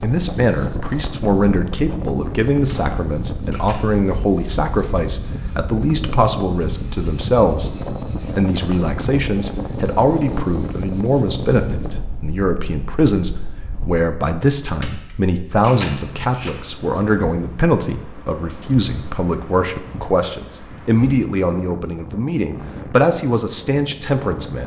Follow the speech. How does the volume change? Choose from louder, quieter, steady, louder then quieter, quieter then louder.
steady.